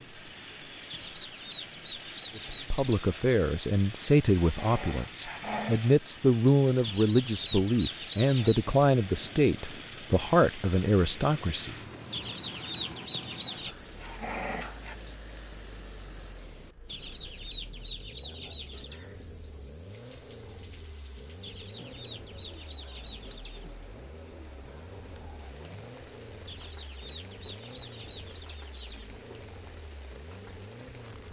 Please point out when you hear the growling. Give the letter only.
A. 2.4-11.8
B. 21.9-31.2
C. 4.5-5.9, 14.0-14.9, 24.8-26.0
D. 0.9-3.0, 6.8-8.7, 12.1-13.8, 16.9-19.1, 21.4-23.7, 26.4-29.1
C.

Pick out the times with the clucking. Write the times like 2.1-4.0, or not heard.
0.9-3.0, 6.8-8.7, 12.1-13.8, 16.9-19.1, 21.4-23.7, 26.4-29.1.